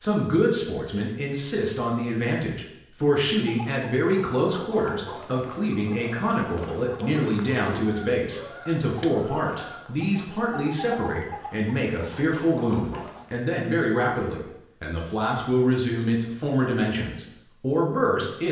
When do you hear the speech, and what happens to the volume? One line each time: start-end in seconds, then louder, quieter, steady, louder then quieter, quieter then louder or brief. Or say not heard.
0.0-18.4 steady.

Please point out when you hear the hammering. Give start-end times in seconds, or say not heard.
not heard.